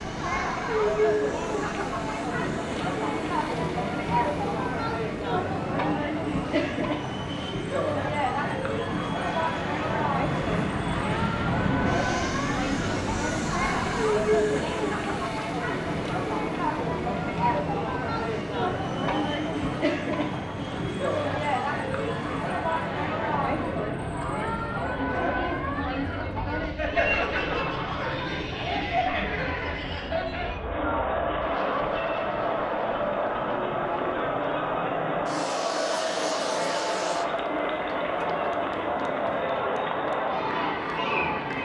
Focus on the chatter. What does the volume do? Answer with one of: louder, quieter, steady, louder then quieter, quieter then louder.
steady.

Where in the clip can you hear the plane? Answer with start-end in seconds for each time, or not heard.
0.0-41.6.